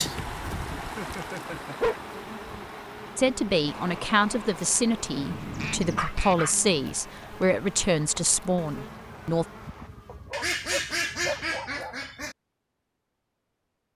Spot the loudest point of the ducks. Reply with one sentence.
The loudest moment of the ducks is at 11 seconds.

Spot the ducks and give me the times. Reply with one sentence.
The ducks can be heard from 0.0 to 1.8 s, from 5.5 to 6.3 s and from 10.3 to 12.3 s.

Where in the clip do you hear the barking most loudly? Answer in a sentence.
The volume of the barking peaks at 2 seconds.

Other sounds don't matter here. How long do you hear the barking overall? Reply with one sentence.
You can hear the barking for 4 seconds altogether.